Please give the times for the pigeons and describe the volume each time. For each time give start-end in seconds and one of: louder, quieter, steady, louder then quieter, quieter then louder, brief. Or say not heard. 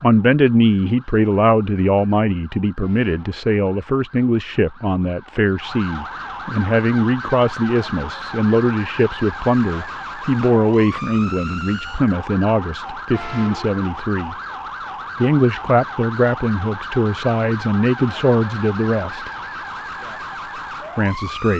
not heard.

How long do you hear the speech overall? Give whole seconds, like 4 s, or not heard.
19 s.